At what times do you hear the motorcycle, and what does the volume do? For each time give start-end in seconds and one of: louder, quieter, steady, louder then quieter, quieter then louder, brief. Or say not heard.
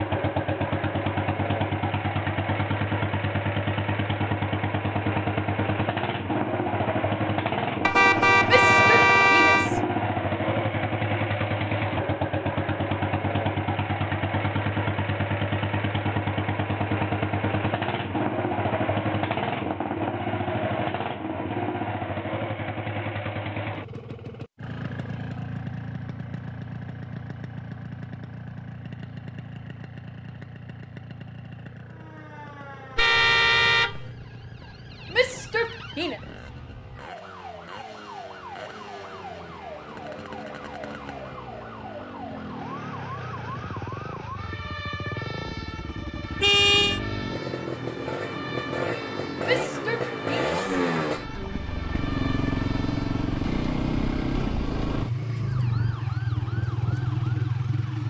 0.0-58.0 quieter then louder.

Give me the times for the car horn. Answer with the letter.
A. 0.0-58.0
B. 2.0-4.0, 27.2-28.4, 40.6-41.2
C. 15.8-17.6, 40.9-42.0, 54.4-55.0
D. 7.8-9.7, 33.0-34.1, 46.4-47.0
D.